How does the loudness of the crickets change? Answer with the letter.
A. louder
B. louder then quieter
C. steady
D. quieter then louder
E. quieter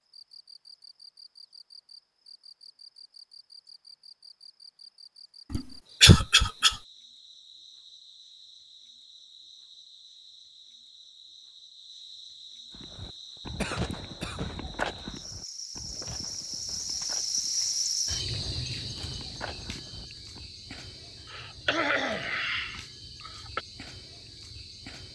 B.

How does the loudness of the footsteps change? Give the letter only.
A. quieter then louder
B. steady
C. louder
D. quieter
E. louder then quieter
A.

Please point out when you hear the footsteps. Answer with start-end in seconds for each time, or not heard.
12.7-20.4.